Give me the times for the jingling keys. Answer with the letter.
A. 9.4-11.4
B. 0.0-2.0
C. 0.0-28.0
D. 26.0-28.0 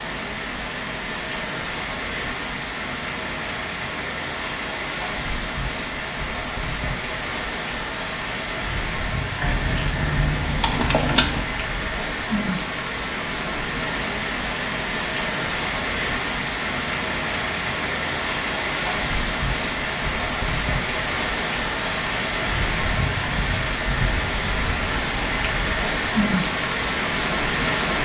A.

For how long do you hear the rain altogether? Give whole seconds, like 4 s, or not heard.
28 s.